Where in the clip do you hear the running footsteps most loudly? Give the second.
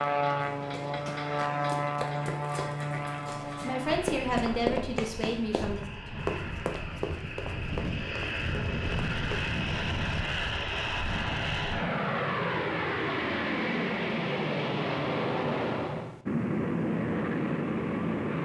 5 s.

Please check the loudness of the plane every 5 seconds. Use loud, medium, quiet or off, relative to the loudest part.
loud, medium, loud, loud.